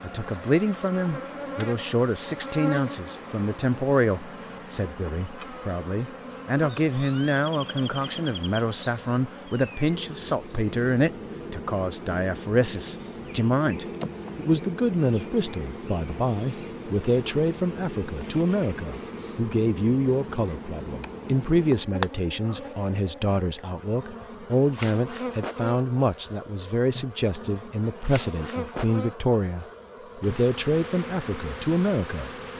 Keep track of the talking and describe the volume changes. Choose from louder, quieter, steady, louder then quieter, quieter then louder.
steady.